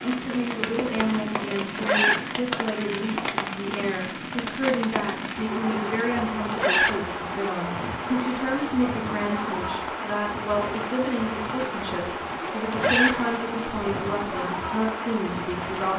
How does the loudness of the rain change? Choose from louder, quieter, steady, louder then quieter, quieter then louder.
steady.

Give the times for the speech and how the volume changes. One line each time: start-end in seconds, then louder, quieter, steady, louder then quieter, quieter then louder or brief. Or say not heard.
0.0-15.9 steady.